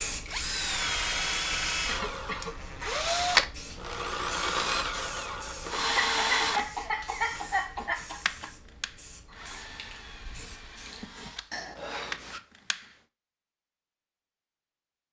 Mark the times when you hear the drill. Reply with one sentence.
The drill can be heard from 0.2 to 12.9 s.